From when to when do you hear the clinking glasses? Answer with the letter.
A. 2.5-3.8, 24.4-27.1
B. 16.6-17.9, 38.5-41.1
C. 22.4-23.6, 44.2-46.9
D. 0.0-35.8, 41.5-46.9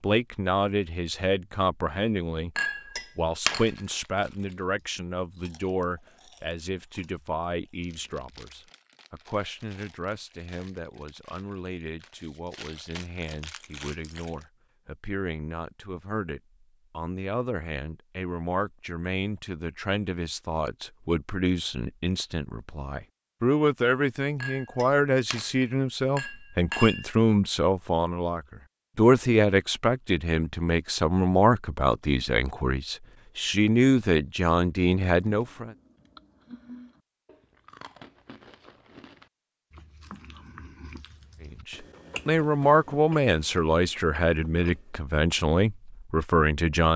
A.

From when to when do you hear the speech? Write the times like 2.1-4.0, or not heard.
0.0-35.8, 41.5-46.9.